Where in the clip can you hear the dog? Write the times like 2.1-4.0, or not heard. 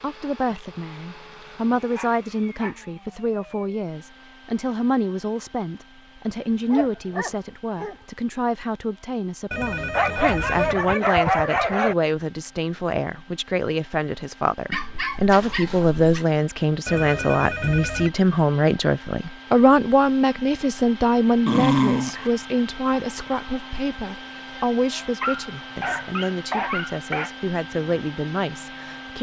1.9-2.8, 6.2-8.0, 9.9-11.9, 14.7-16.2, 21.4-22.3, 25.2-27.3.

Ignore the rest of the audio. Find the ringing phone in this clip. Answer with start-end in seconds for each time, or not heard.
9.5-10.8, 16.9-18.1.